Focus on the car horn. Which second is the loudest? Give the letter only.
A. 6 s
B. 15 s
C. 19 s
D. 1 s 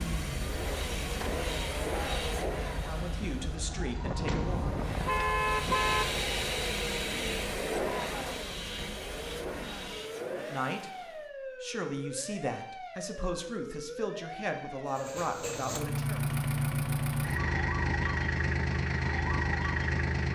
A.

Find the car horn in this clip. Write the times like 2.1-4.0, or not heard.
4.0-6.0.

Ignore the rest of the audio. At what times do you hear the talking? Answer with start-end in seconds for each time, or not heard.
2.8-4.7, 10.3-16.2.